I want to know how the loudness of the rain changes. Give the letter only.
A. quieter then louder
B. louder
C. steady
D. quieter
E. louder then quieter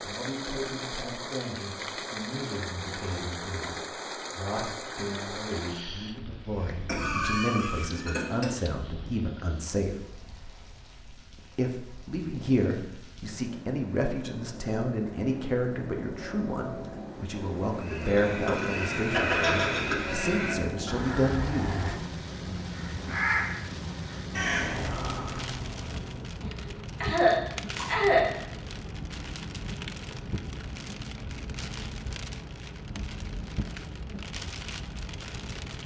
A.